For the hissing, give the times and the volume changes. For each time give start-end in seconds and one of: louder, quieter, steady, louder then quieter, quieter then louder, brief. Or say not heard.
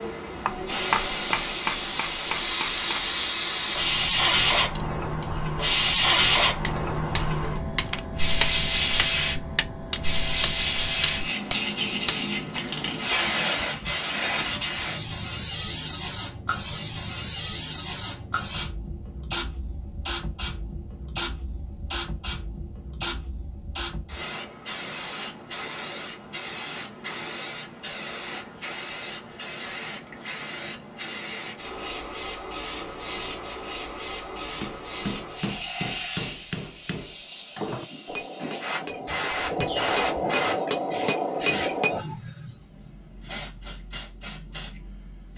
0.0-45.3 quieter.